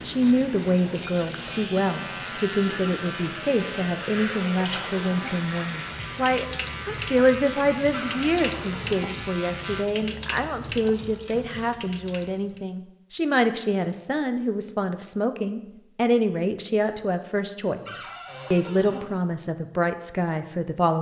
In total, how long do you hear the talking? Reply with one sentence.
You can hear the talking for 21 seconds altogether.